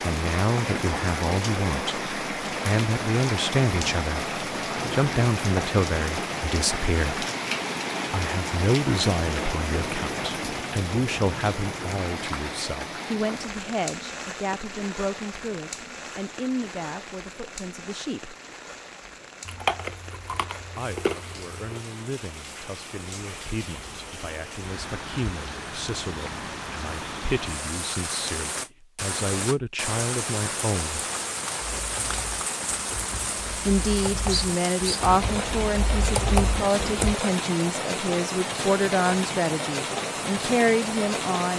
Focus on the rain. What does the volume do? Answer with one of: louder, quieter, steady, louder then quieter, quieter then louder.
quieter then louder.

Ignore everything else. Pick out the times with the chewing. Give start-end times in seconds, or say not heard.
19.4-21.8.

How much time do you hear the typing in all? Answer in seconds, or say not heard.
5 s.